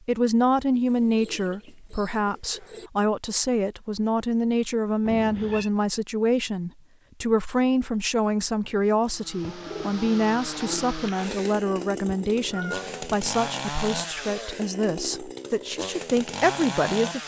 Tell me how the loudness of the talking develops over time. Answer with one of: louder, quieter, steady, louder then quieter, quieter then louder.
steady.